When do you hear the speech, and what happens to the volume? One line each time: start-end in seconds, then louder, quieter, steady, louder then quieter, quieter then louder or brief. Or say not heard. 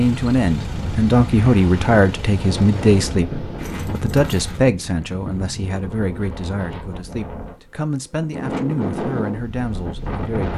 0.0-10.5 quieter.